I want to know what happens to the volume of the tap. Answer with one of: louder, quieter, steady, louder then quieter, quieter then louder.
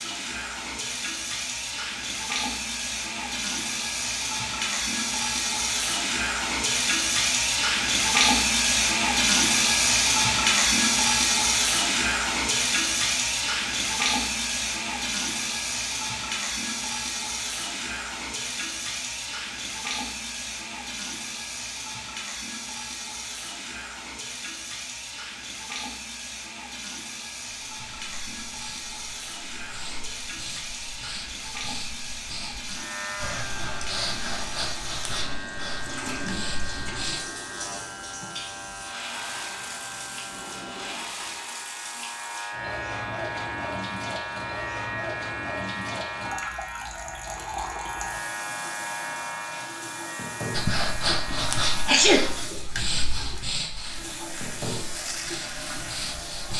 quieter.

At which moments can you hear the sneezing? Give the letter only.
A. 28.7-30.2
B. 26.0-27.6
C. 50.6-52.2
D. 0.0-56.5
C.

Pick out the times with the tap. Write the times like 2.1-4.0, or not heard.
0.0-56.5.